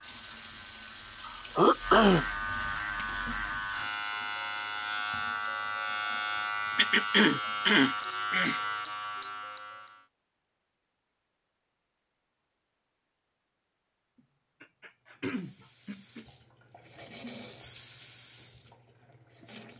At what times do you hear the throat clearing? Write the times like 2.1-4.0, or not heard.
1.2-2.2, 6.8-8.6, 14.6-16.2.